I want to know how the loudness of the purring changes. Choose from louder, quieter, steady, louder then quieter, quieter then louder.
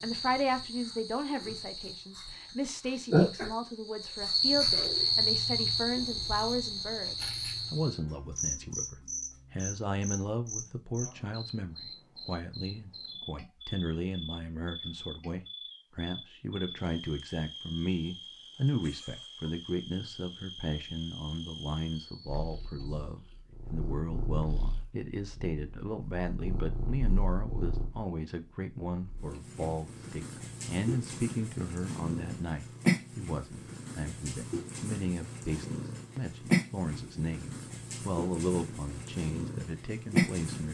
louder.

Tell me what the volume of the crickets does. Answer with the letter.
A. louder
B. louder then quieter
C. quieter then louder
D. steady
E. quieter
E.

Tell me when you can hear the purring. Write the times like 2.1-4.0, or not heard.
22.2-40.6.